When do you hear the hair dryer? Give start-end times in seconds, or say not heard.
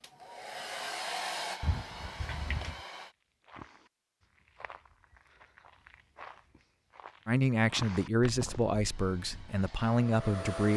0.0-3.1, 8.8-10.7.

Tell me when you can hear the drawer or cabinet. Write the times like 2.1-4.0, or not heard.
1.6-2.8.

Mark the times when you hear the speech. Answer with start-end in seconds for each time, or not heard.
7.2-10.7.